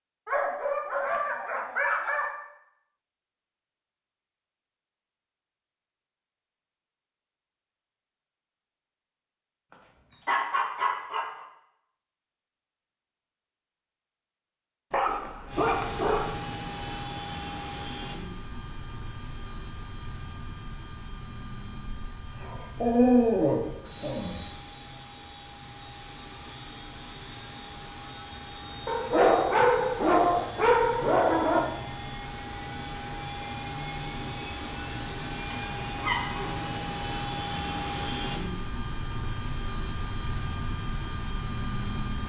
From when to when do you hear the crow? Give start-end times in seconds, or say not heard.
not heard.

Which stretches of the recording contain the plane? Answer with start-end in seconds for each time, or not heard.
15.4-42.2.